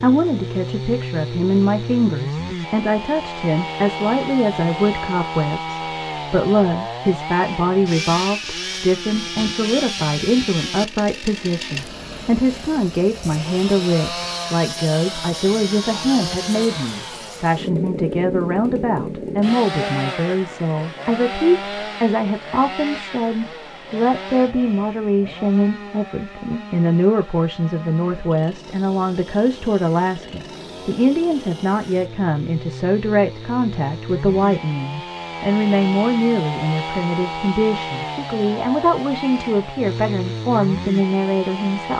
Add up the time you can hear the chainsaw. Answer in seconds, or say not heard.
42 s.